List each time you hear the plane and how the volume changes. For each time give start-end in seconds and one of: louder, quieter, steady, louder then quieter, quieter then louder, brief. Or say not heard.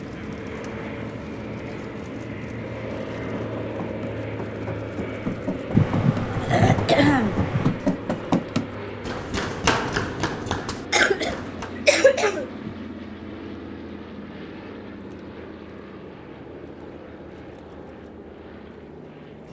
0.0-19.4 quieter.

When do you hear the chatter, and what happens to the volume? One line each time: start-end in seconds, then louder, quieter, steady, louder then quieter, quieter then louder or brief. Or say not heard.
not heard.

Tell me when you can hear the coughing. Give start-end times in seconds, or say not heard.
5.7-7.7, 10.9-12.8.